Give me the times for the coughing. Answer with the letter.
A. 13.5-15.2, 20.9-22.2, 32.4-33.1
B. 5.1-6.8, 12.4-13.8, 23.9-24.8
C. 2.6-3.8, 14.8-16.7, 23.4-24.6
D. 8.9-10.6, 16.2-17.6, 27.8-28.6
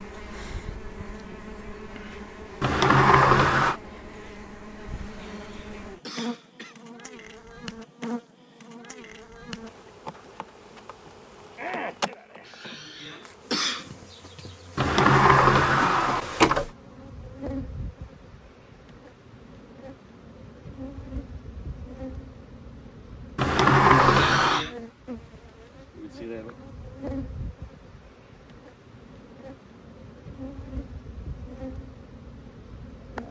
B.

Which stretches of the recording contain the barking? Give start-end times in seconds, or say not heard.
not heard.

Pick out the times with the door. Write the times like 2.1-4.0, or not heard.
2.6-3.8, 14.8-16.7, 23.4-24.6.